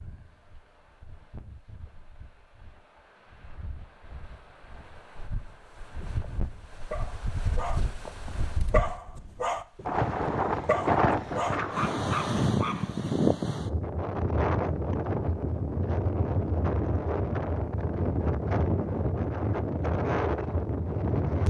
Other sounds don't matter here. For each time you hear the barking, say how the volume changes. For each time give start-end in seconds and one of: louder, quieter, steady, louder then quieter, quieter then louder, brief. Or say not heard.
6.0-12.9 louder.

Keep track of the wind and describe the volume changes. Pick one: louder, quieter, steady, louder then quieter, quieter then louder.
louder.